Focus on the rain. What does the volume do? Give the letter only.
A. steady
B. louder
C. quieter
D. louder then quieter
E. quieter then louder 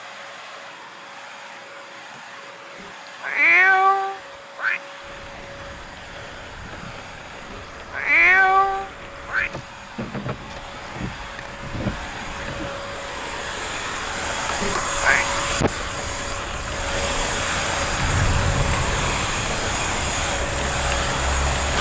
B.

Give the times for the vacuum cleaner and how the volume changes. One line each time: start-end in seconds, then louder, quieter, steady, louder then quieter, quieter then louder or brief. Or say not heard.
0.0-21.7 louder.